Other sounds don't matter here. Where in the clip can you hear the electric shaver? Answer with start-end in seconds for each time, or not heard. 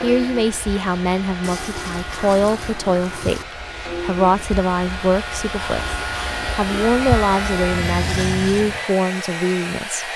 0.0-8.8.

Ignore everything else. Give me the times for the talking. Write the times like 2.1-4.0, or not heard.
0.0-10.1.